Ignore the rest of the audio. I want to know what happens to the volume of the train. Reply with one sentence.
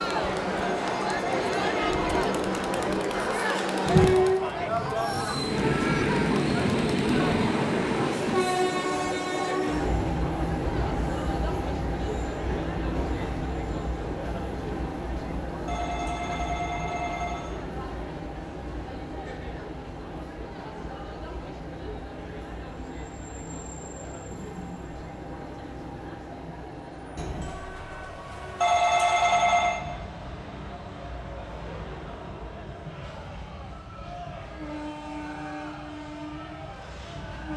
The volume of the train goes down.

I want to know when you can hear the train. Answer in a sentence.
You can hear the train from 0.0 to 37.5 s.